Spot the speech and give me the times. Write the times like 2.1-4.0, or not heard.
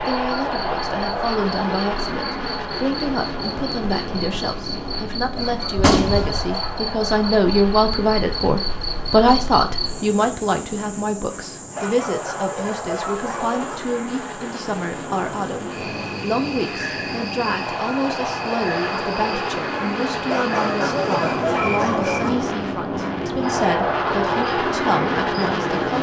0.0-25.9.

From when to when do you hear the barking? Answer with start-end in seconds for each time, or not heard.
5.3-6.8, 11.8-13.8, 20.3-22.3.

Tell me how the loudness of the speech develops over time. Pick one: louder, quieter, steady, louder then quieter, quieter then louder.
louder then quieter.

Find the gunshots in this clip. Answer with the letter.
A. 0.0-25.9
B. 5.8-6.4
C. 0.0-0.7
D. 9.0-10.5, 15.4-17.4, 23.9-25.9
B.